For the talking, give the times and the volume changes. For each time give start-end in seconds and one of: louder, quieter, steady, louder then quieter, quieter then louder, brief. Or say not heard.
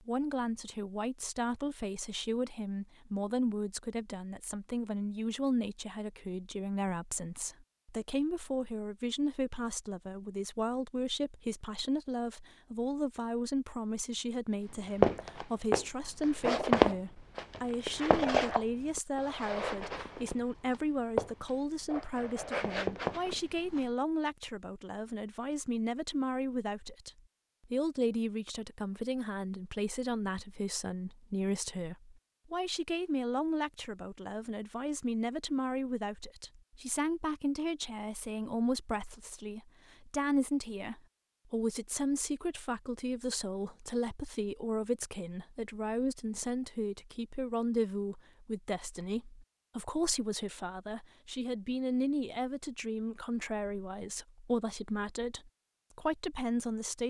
0.1-57.0 steady.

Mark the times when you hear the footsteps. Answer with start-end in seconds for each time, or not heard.
14.7-23.9.